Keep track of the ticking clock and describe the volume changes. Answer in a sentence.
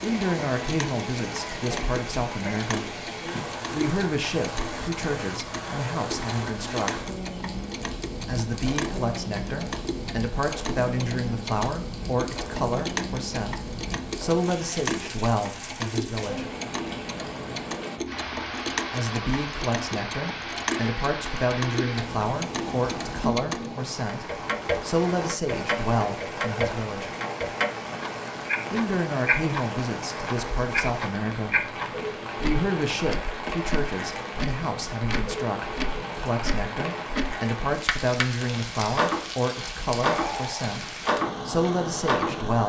The loudness of the ticking clock goes up.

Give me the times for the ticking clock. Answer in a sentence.
The ticking clock can be heard from 0.0 to 42.4 s.